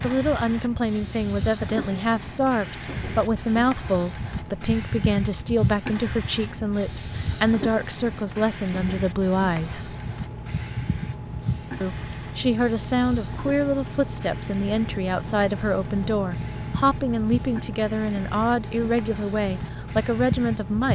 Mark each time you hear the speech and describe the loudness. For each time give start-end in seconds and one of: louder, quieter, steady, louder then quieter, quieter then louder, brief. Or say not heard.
0.0-9.9 steady
11.8-20.8 steady.